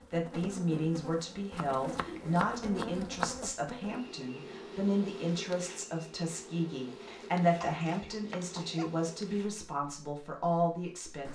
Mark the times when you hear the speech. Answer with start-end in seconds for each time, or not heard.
0.0-11.3.